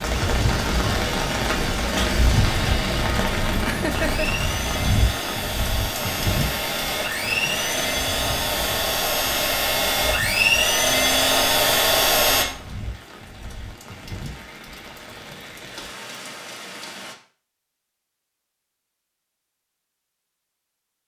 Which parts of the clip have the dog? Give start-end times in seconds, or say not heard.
not heard.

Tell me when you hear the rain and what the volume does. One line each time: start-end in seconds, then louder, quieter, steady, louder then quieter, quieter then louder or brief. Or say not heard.
0.0-17.1 quieter.